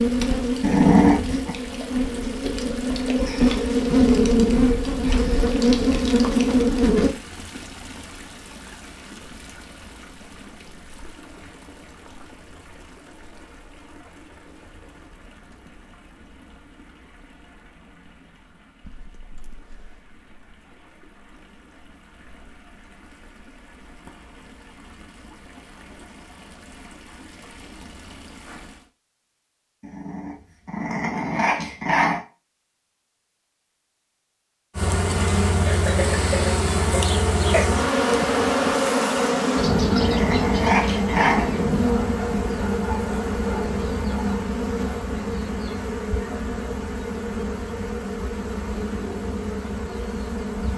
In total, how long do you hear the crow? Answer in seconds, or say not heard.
not heard.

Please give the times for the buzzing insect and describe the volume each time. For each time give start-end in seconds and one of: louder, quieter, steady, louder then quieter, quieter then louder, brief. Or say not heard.
0.0-7.2 louder
34.8-50.7 quieter.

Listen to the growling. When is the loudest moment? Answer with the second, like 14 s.
1 s.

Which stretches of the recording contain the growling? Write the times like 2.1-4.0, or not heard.
0.6-1.6, 29.9-32.2, 39.2-41.5.